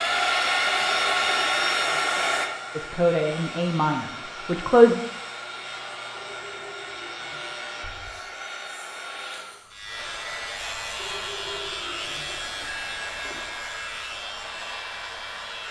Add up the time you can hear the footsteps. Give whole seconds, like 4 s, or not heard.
not heard.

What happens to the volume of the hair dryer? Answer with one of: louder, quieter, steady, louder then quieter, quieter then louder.
quieter.